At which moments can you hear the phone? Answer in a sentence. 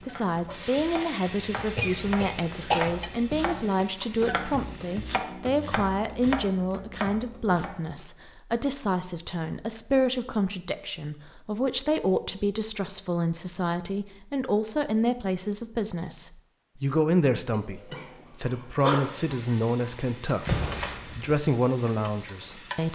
You can hear the phone from 20.4 to 21.4 s.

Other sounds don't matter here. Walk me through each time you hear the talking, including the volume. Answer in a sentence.
You can hear the talking from 0.1 to 22.9 s, at a steady volume.